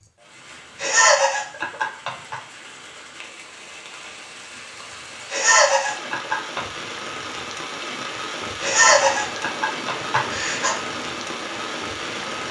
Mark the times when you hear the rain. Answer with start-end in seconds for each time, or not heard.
0.0-12.4.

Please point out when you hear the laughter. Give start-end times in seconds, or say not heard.
0.8-2.4, 5.3-6.6, 8.6-10.8.